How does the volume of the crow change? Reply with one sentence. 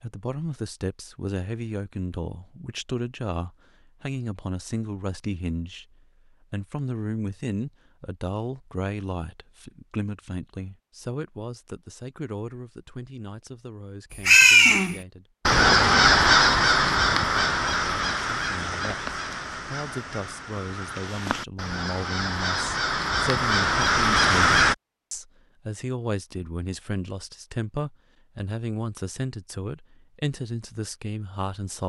The loudness of the crow goes down, then up.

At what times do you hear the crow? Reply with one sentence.
The crow can be heard from 14.2 to 24.8 s.